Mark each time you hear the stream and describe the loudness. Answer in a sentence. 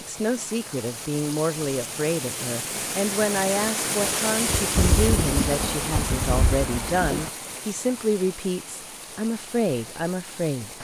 You can hear the stream from 0.0 to 10.7 s, getting louder then quieter.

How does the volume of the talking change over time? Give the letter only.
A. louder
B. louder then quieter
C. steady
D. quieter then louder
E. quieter
C.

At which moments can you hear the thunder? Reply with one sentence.
You can hear the thunder from 4.5 to 7.3 s.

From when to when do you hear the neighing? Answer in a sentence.
You can't hear the neighing here.